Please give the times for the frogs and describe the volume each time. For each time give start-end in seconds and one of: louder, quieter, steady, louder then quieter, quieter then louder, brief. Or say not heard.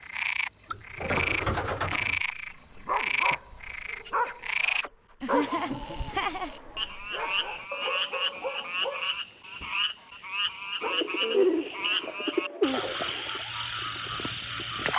0.0-14.9 steady.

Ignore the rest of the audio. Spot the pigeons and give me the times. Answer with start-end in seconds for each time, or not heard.
0.7-2.2, 5.5-6.8, 10.8-13.4.